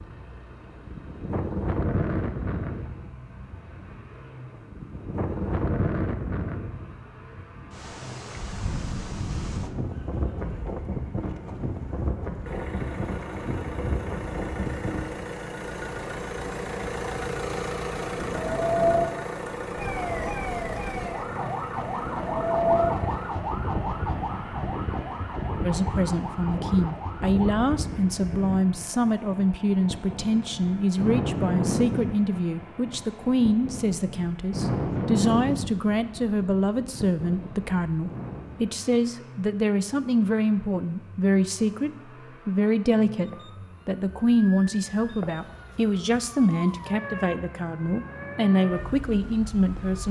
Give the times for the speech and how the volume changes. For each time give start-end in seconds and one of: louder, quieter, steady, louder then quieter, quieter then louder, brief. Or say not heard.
25.6-50.0 steady.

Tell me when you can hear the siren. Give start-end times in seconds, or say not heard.
19.8-27.6, 43.2-50.0.